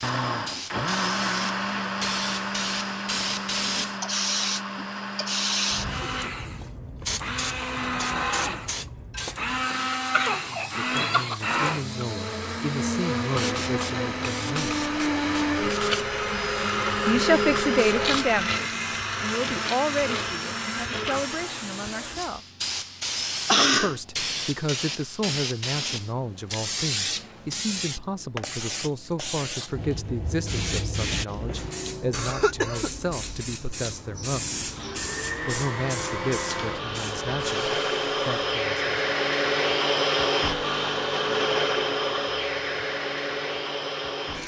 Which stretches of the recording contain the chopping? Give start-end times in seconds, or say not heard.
not heard.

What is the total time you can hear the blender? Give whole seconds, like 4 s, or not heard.
31 s.